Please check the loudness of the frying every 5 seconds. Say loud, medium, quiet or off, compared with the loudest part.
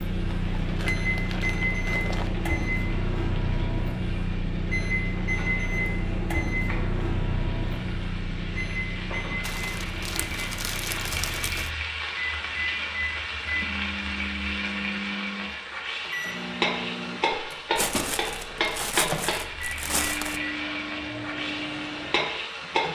quiet, medium, loud, loud, loud.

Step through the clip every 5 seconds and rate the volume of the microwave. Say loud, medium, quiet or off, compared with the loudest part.
loud, loud, medium, medium, medium.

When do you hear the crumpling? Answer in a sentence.
The crumpling can be heard from 0.3 to 2.3 s, from 9.4 to 11.7 s and from 17.8 to 20.4 s.